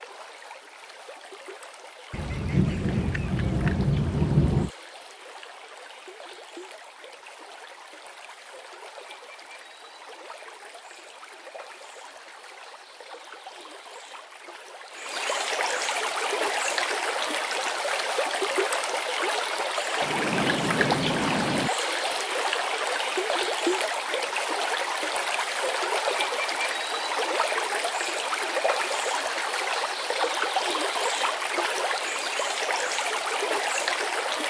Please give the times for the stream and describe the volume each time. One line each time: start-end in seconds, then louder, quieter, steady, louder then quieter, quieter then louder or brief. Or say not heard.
0.0-34.4 louder.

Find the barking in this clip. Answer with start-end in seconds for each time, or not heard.
not heard.